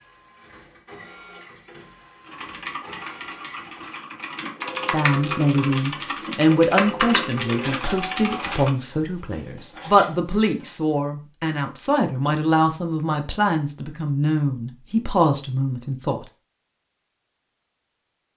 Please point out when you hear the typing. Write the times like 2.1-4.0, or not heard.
2.2-8.7.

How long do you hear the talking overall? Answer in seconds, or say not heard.
11 s.